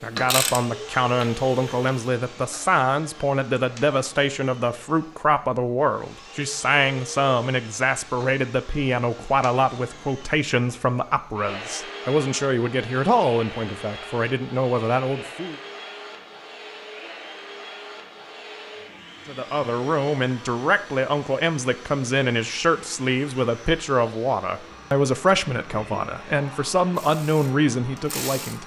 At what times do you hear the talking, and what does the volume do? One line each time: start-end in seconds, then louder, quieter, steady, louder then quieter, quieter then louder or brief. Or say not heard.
0.0-15.6 steady
19.2-28.6 steady.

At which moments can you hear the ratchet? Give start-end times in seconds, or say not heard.
0.0-1.9, 26.9-28.6.